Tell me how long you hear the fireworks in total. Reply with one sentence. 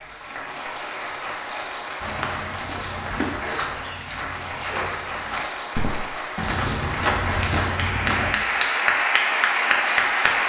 The fireworks can't be heard in this clip.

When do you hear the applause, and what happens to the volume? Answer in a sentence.
The applause can be heard from 0.0 to 10.4 s, getting louder.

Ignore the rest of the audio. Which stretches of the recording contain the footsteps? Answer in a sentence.
The footsteps can be heard from 2.0 to 8.3 s.